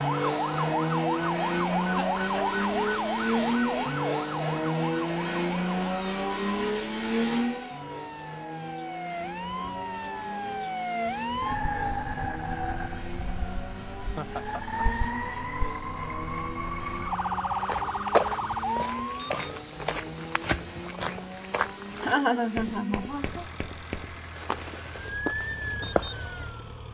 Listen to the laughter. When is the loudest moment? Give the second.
22 s.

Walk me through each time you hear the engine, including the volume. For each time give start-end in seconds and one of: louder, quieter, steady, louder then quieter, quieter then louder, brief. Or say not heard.
0.0-26.8 quieter.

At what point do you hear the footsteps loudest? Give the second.
18 s.